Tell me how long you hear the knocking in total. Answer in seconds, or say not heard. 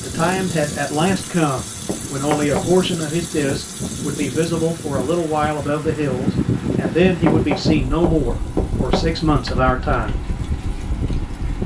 4 s.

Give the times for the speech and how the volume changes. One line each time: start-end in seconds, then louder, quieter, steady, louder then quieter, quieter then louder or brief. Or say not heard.
0.0-10.2 steady.